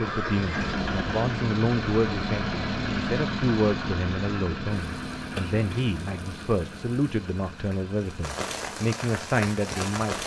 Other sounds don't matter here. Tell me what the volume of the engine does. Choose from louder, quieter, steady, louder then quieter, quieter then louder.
quieter.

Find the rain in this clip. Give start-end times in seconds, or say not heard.
4.8-10.2.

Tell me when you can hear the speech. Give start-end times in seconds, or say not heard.
0.0-10.2.